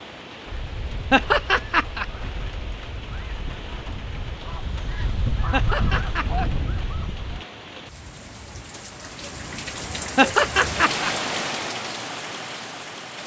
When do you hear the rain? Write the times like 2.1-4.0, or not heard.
0.0-13.2.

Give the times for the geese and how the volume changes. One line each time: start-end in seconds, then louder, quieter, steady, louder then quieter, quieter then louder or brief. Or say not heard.
0.5-7.5 louder.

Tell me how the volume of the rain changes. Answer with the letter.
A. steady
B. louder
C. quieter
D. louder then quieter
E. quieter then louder
B.